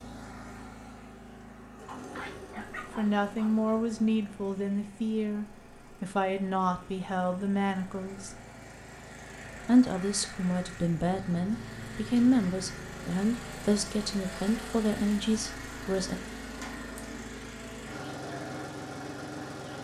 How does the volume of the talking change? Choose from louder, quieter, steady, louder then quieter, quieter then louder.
steady.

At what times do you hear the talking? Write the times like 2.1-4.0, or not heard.
2.5-8.3, 9.6-16.2.